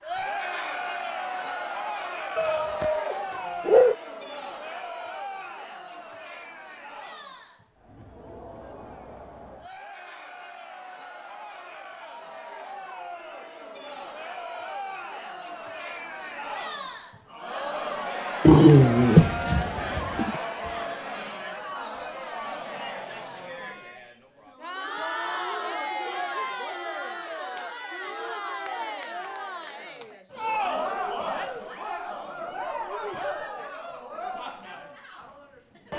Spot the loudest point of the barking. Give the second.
19 s.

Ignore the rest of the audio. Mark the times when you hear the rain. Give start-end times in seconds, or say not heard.
not heard.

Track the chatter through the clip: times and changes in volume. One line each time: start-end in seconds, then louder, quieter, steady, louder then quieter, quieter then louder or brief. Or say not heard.
0.0-35.9 quieter then louder.